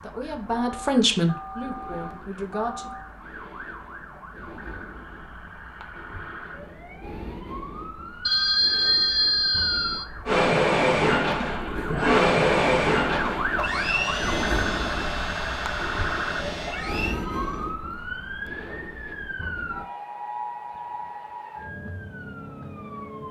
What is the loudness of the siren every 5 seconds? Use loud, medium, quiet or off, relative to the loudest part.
quiet, medium, loud, loud, medium.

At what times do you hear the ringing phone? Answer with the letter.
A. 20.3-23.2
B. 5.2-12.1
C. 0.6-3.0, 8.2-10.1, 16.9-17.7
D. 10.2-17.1
C.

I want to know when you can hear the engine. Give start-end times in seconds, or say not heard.
10.2-17.1.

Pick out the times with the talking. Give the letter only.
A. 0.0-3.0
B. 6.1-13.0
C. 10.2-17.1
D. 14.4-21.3
A.